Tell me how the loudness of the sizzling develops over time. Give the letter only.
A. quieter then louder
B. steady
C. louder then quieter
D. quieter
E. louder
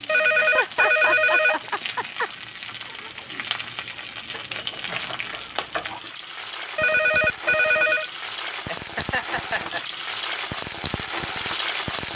E.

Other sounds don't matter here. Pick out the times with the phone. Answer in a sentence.
The phone can be heard from 0.1 to 1.6 s and from 6.8 to 8.1 s.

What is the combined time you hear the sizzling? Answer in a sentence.
The sizzling can be heard for 12 seconds in total.